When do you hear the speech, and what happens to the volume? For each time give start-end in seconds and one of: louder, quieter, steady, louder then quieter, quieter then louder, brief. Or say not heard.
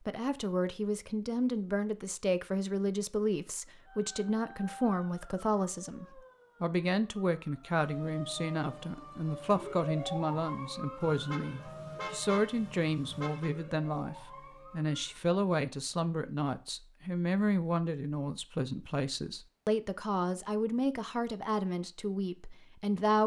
0.1-23.2 steady.